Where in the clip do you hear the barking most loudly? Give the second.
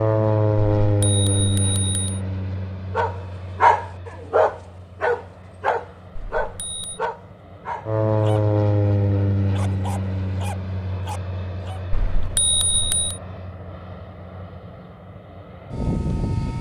4 s.